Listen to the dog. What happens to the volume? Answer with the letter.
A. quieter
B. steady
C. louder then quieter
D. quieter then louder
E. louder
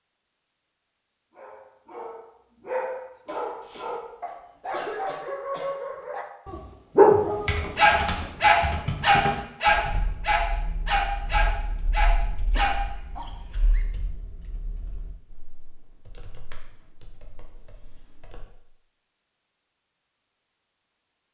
C.